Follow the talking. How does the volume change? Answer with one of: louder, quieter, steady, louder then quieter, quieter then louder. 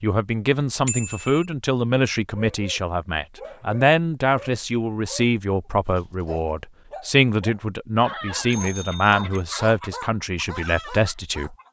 steady.